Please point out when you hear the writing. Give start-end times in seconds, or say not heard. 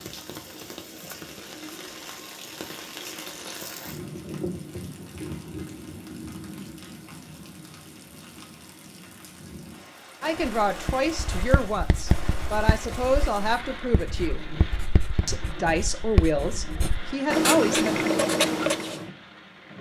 10.3-19.1.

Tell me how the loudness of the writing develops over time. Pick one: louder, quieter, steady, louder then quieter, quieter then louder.
quieter then louder.